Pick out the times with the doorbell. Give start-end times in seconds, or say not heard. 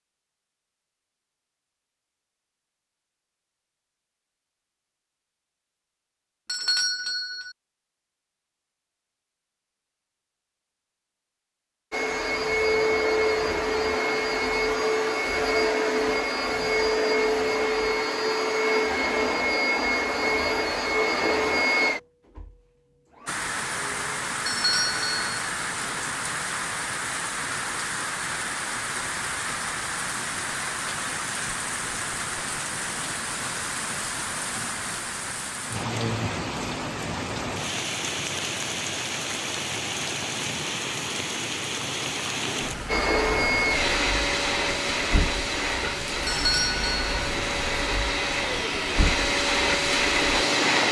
6.5-7.5, 24.4-25.4, 46.2-47.1.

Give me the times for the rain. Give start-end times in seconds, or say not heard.
23.2-50.8.